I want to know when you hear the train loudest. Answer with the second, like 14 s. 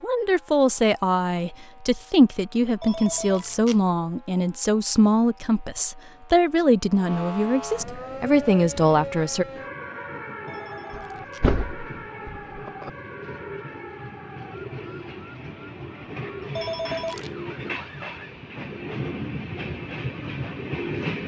21 s.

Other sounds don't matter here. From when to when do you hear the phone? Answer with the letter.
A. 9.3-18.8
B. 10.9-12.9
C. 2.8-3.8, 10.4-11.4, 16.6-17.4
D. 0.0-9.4
C.